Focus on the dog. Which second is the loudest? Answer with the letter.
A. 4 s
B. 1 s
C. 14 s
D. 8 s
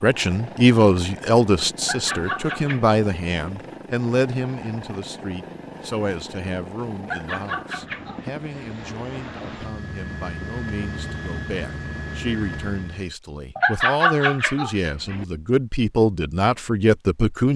C.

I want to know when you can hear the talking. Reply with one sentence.
You can hear the talking from 0.0 to 17.5 s.